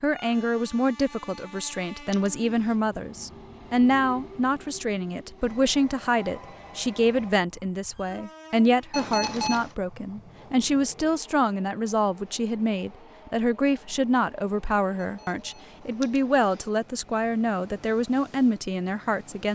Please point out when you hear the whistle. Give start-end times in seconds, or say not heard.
not heard.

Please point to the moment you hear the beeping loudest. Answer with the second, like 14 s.
9 s.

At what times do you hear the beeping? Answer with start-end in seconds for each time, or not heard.
1.1-2.8, 8.9-9.8, 15.0-16.6.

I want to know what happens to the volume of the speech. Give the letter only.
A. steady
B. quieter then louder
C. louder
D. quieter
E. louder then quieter
A.